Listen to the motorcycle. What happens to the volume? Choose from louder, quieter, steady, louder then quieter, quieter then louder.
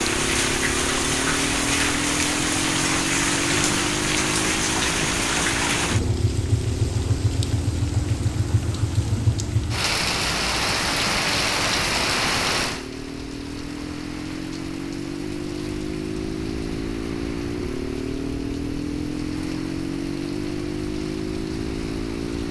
quieter then louder.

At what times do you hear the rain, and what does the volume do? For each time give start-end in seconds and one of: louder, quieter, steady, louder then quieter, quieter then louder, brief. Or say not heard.
0.0-22.4 quieter.